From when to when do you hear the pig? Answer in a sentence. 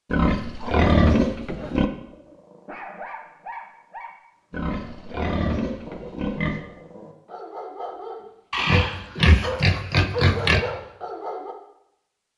You can hear the pig from 0.1 to 1.9 s, from 4.5 to 6.6 s and from 8.5 to 10.6 s.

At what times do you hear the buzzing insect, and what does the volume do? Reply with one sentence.
You can't hear the buzzing insect here.